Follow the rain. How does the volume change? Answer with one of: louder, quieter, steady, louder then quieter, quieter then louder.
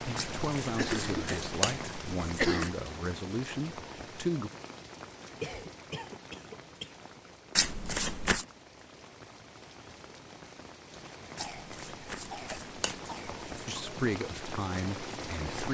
quieter then louder.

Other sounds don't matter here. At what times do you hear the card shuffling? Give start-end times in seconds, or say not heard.
0.1-2.7, 7.5-8.4, 11.3-13.7.